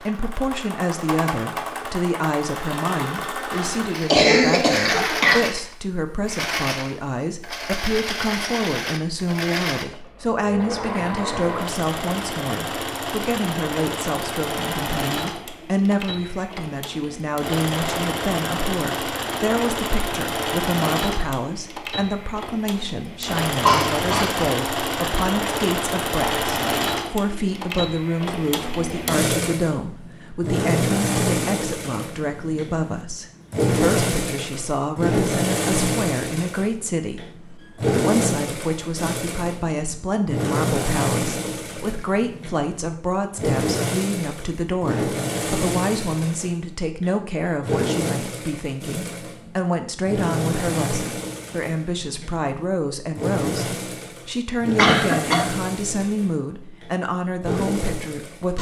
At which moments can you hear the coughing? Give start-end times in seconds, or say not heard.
3.5-5.4, 23.6-24.4, 54.8-55.5.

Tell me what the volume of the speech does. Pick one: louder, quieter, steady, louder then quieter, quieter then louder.
steady.